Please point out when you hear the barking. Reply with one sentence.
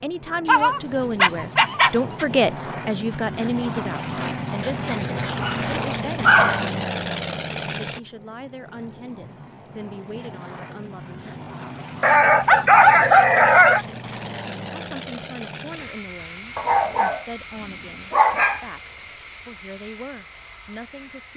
The barking can be heard from 0.5 to 2.2 s, from 5.4 to 6.7 s, from 12.0 to 13.8 s, from 16.6 to 17.2 s and from 18.1 to 18.6 s.